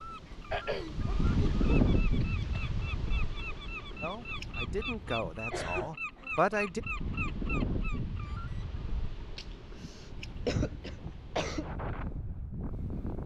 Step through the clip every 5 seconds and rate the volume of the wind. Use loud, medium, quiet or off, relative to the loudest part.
loud, medium, medium.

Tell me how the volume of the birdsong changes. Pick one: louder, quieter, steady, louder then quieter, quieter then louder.
louder.